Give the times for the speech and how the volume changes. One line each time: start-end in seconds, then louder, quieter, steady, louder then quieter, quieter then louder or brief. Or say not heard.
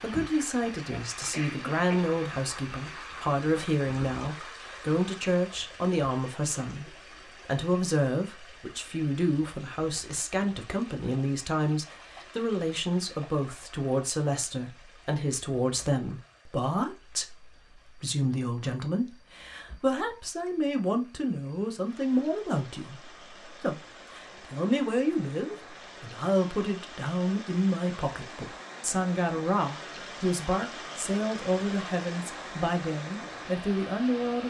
0.0-34.4 steady.